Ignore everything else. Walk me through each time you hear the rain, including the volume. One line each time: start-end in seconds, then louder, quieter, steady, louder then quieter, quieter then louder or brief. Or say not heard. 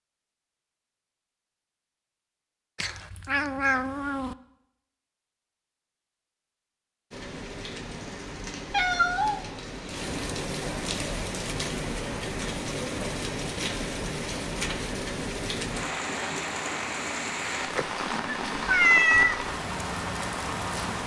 7.1-21.0 louder.